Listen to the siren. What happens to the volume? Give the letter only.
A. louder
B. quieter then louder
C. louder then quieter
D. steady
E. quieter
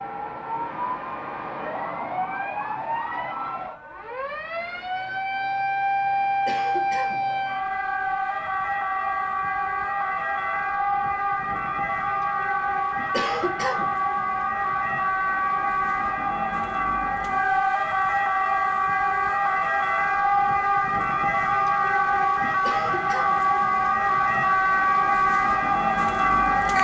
A.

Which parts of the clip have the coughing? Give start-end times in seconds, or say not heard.
6.5-7.3, 13.1-14.0, 22.6-23.5.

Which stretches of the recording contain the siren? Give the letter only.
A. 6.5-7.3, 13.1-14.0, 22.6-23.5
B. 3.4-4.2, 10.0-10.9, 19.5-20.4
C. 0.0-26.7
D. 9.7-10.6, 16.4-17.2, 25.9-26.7
C.